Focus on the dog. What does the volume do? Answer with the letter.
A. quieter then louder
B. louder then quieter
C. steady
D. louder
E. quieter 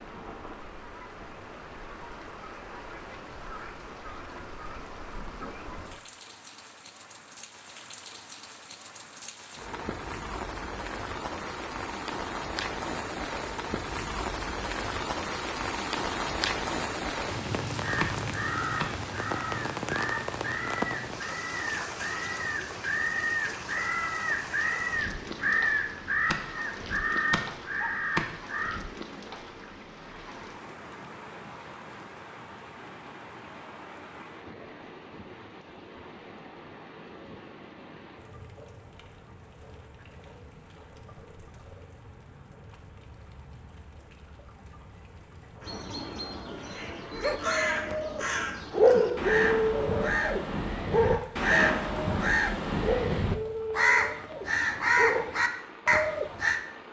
B.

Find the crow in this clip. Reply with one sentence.
The crow can be heard from 17.8 to 28.8 s and from 45.6 to 56.6 s.